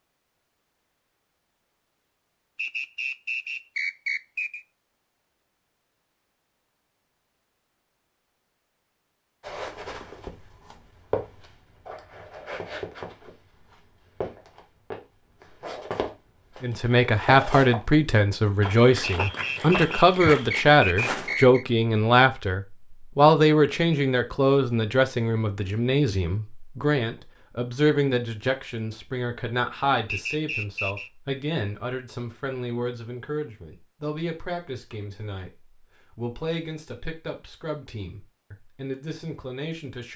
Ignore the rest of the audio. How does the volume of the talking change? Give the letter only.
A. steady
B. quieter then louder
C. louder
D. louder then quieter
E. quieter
E.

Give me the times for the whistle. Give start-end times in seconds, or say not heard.
2.5-4.7, 19.0-21.6, 30.1-31.1.